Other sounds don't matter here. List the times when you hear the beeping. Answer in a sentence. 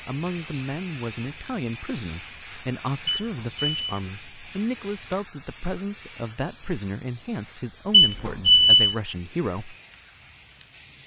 The beeping can be heard from 3.1 to 4.0 s and from 7.9 to 8.9 s.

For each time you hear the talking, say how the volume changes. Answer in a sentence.
You can hear the talking from 0.1 to 9.8 s, at a steady volume.